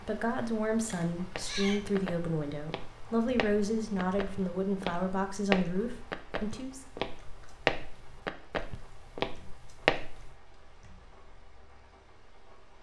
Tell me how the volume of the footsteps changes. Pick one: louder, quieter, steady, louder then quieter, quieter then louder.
louder.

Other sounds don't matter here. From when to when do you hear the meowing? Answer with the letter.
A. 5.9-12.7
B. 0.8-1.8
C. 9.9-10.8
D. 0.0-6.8
B.